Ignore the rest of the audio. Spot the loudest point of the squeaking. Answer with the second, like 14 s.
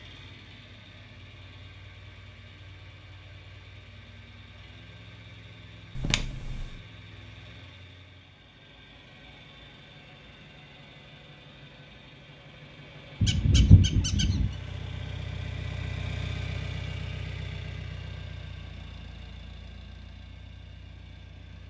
14 s.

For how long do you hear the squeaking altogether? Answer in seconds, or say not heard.
2 s.